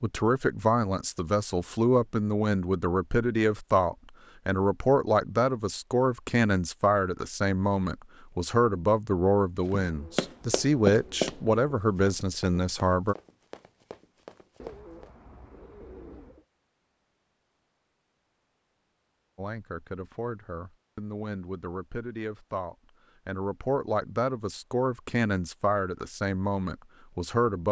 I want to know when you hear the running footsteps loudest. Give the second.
11 s.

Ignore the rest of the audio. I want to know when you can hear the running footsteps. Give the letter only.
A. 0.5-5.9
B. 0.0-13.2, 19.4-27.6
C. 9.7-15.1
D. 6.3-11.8
C.